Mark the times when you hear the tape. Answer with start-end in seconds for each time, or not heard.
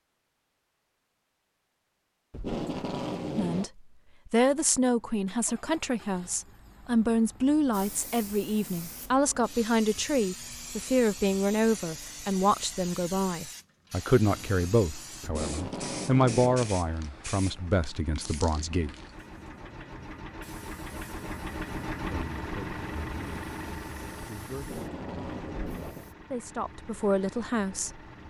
2.3-3.7, 15.2-16.8, 24.6-26.1.